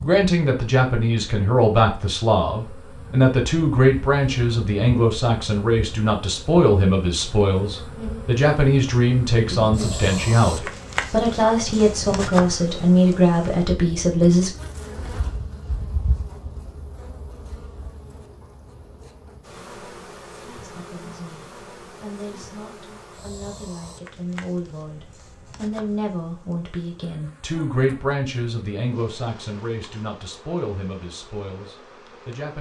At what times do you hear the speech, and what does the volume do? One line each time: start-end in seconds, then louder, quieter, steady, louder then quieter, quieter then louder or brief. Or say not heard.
0.0-14.5 steady
20.6-32.5 louder then quieter.